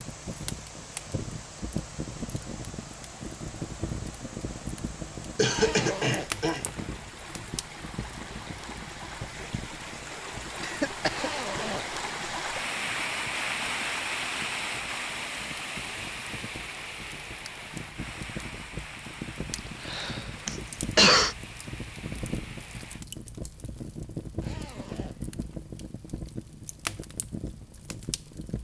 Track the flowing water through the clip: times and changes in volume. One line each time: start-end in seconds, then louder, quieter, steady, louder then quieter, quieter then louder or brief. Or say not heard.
0.0-23.1 louder then quieter.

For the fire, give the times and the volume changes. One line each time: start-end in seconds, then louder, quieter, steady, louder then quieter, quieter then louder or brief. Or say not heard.
0.0-28.6 quieter then louder.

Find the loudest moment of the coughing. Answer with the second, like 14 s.
21 s.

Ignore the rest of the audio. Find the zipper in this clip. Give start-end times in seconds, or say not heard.
5.5-6.9, 11.1-12.0, 24.4-25.6.